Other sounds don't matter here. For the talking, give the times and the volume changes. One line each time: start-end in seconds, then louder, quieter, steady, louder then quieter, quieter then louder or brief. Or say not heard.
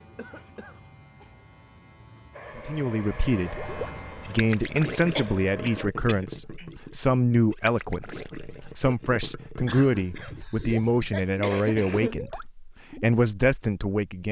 2.5-14.2 steady.